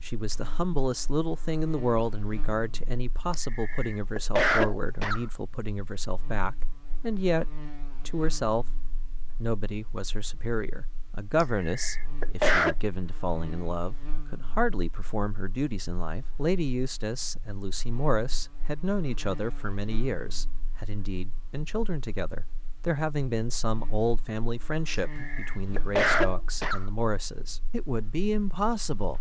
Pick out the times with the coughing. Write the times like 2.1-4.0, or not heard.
3.3-5.2, 11.4-12.8, 24.9-26.9.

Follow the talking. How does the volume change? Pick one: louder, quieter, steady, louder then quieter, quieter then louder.
steady.